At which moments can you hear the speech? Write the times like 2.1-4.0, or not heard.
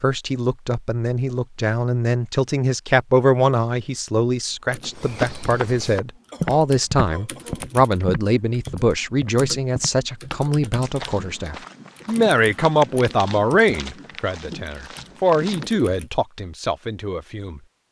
0.0-17.6.